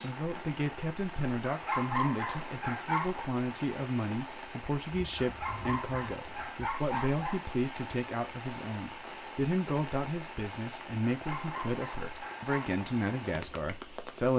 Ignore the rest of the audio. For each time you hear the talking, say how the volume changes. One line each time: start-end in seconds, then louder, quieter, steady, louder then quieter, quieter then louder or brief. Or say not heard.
0.0-14.3 steady.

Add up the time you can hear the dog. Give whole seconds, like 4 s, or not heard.
6 s.